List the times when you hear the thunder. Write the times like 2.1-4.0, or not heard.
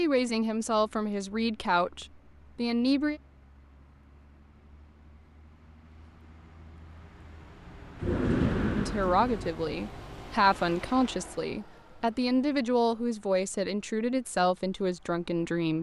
8.0-9.5.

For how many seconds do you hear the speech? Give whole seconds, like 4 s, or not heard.
10 s.